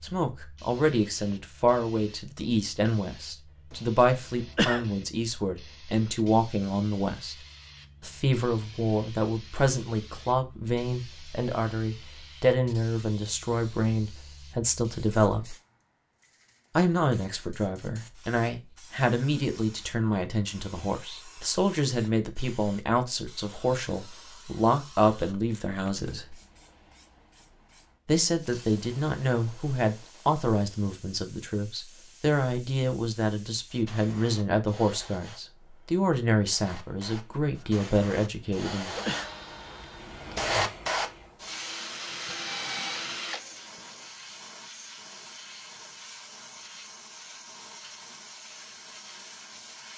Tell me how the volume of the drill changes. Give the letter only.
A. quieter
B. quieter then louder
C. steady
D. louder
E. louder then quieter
D.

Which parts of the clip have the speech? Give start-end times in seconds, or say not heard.
0.0-7.3, 8.0-15.6, 16.8-26.4, 28.1-39.0.